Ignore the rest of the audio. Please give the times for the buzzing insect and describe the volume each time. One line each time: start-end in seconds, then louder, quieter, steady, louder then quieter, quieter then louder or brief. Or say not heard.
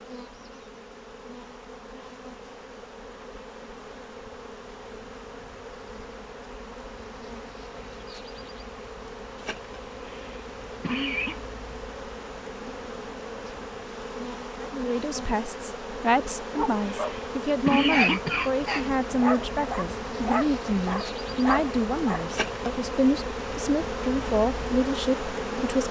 0.0-25.8 louder.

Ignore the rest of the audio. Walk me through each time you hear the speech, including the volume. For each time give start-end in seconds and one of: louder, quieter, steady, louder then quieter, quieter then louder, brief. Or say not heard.
14.6-25.8 steady.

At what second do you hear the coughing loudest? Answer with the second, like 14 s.
18 s.